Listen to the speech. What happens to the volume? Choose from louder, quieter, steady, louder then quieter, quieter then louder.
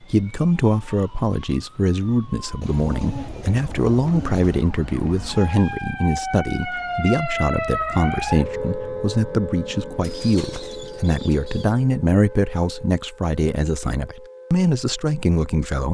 steady.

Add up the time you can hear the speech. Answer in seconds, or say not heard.
16 s.